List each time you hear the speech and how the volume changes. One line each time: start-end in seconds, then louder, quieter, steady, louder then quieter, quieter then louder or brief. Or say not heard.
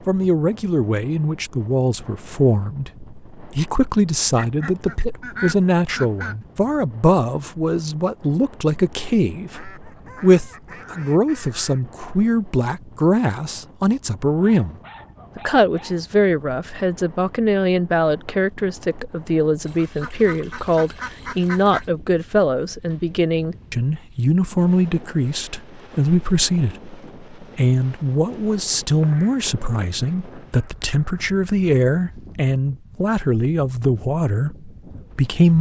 0.1-14.8 steady
15.3-35.5 steady.